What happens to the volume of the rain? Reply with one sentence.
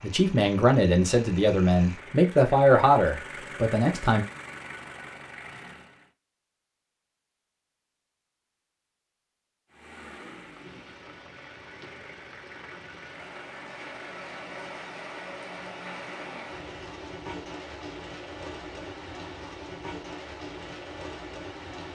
The volume of the rain goes up.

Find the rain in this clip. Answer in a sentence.
The rain can be heard from 10.4 to 21.9 s.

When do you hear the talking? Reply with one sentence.
You can hear the talking from 0.0 to 4.2 s.